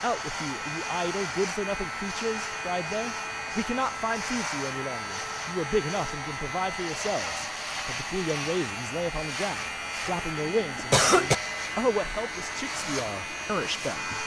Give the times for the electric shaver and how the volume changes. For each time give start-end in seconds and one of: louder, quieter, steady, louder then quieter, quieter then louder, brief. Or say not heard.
0.0-14.2 steady.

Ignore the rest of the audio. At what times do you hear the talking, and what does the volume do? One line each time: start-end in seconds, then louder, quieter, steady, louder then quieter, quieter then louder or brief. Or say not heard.
0.0-14.2 steady.